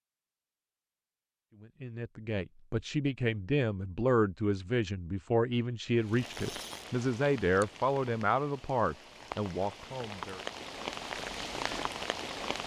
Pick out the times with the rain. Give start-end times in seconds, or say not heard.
6.0-12.6.